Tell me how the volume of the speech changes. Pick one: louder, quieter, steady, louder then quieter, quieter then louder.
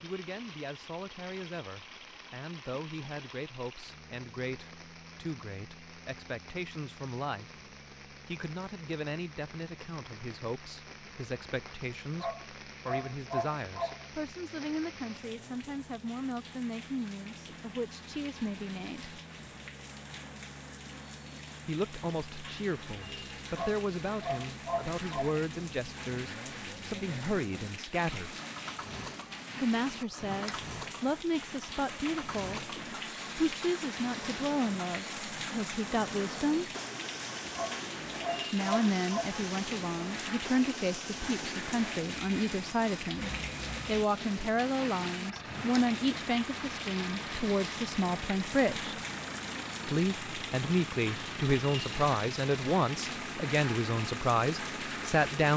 louder.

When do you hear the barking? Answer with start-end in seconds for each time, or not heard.
12.2-14.1, 23.6-25.4, 37.5-39.4.